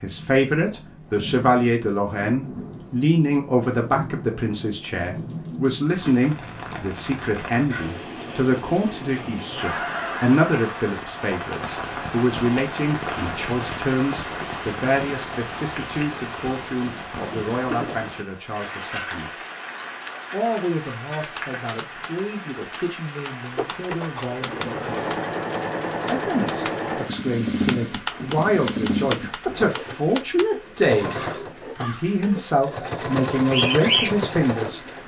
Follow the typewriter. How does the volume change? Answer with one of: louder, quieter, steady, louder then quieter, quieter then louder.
louder.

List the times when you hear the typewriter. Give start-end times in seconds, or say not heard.
21.2-30.4.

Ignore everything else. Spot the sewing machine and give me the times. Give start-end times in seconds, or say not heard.
23.6-35.0.